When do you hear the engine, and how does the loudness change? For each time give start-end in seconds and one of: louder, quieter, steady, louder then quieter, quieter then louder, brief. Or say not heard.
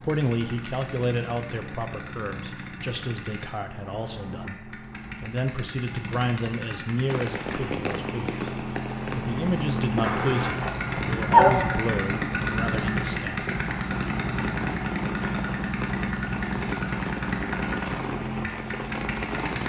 0.0-19.6 louder.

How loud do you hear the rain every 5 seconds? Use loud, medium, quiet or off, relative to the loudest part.
off, loud, loud, loud.